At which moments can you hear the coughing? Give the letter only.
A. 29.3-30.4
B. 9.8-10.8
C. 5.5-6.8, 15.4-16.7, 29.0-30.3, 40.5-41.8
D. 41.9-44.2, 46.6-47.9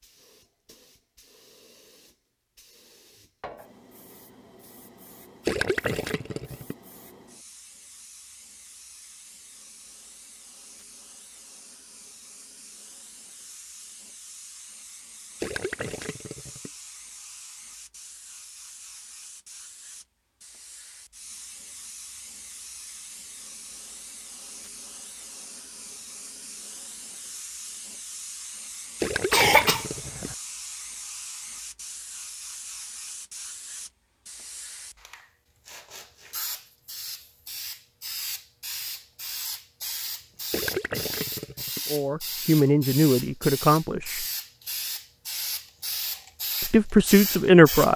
A.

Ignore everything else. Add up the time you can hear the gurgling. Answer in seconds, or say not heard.
5 s.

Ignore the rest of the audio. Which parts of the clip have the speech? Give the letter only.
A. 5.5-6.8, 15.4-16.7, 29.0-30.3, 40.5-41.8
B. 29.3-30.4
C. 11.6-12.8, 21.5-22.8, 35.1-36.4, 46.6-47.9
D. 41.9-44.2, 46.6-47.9
D.